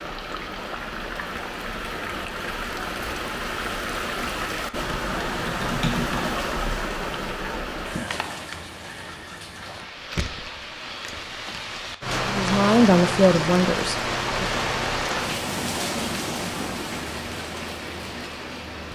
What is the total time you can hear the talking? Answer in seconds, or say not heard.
2 s.